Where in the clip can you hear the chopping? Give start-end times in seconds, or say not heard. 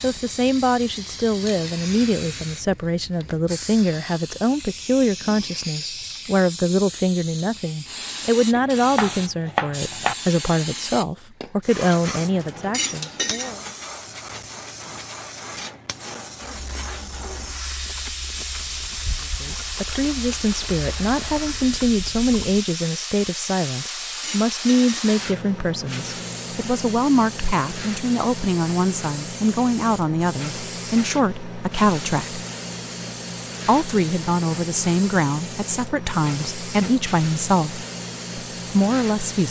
8.5-10.2.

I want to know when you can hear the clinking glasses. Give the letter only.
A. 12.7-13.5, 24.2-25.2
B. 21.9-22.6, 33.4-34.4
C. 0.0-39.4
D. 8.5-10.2
A.